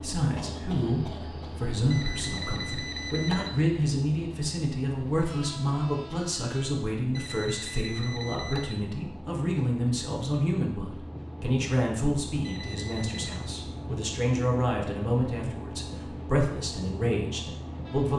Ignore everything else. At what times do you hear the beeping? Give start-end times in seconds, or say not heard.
1.9-3.5, 7.2-8.8, 12.4-13.5.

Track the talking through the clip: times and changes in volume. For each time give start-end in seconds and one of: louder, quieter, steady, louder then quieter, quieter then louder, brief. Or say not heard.
0.0-18.1 steady.